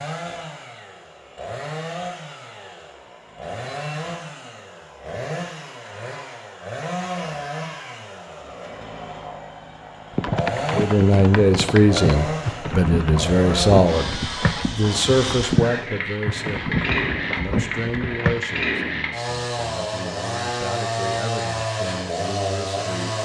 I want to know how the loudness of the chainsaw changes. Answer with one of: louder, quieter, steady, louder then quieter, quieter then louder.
louder.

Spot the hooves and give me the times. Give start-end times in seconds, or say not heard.
10.2-18.4.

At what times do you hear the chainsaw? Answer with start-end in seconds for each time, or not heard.
0.0-23.2.